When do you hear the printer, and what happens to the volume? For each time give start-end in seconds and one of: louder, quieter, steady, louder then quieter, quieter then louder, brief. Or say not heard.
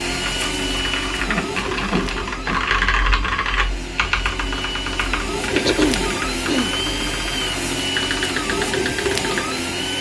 0.0-9.9 quieter then louder.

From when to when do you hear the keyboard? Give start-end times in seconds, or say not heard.
0.1-9.6.